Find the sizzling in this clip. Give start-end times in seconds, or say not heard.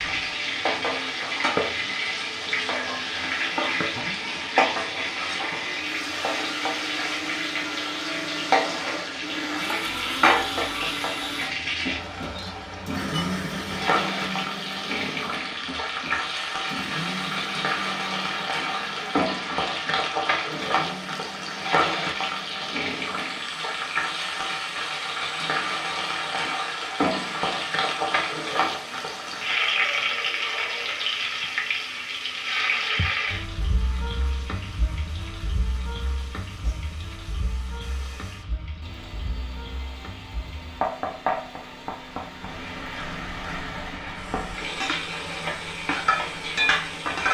0.0-47.2.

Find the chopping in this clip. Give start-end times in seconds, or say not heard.
not heard.